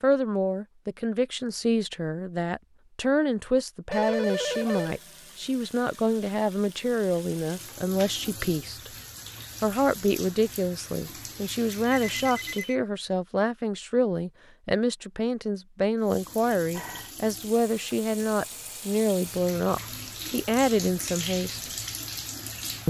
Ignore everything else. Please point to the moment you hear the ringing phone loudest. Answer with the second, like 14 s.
4 s.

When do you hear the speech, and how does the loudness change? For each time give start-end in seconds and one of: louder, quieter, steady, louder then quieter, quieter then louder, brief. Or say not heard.
0.0-8.9 steady
9.6-21.7 steady.